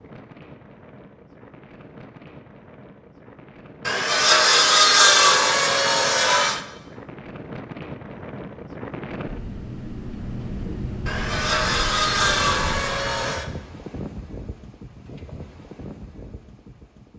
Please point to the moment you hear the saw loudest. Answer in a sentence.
The loudest moment of the saw is at 5 seconds.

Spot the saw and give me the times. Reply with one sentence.
You can hear the saw from 3.9 to 6.6 s and from 11.1 to 13.4 s.